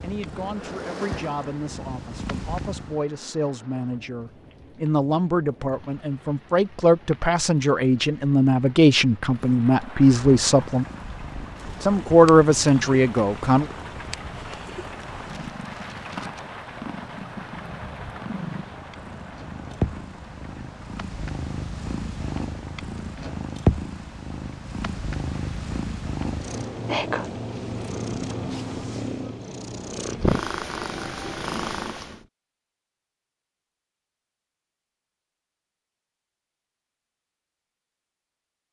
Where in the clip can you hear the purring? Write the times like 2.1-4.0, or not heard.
0.0-3.0, 10.3-32.2.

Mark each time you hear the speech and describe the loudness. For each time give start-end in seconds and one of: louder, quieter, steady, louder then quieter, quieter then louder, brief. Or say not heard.
0.0-10.8 louder
11.8-13.7 brief.